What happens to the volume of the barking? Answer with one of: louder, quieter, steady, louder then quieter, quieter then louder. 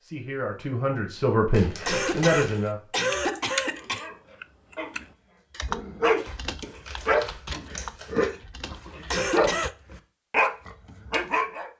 louder.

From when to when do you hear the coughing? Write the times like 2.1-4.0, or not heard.
1.9-4.1, 9.1-9.8.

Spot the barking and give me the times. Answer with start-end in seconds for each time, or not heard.
3.7-11.7.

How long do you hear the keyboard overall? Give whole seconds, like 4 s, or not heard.
7 s.